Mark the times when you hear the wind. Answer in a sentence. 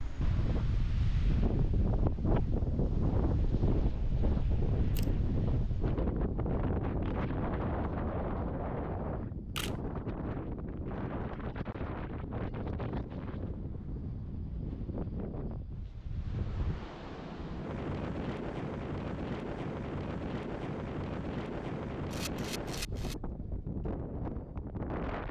The wind can be heard from 0.0 to 25.2 s.